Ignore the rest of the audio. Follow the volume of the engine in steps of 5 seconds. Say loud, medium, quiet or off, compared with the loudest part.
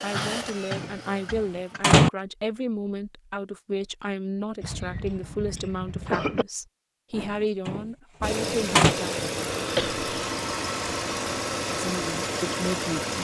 medium, loud, loud.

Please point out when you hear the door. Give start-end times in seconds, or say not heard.
0.2-2.1, 7.2-8.9.